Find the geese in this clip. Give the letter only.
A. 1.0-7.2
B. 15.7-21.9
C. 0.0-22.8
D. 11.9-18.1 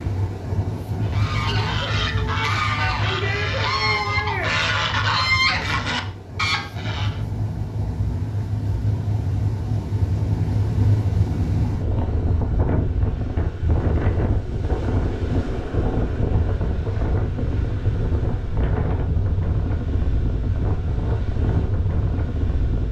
A.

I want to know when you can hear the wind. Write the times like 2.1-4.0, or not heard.
0.0-22.8.